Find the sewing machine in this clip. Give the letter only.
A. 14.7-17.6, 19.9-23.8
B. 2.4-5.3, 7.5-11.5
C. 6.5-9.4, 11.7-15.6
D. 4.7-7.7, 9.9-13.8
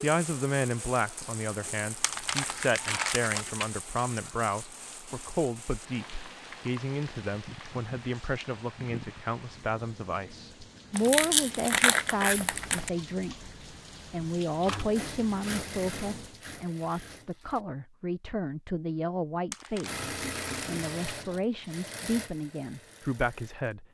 A.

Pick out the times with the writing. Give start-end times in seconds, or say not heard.
not heard.